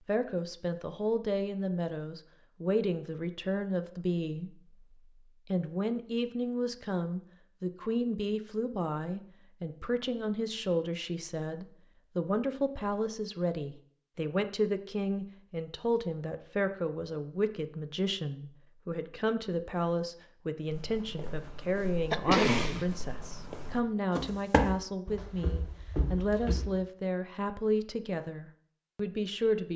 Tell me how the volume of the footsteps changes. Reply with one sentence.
The loudness of the footsteps goes up, then down.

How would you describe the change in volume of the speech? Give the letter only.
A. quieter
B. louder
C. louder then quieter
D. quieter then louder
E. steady
E.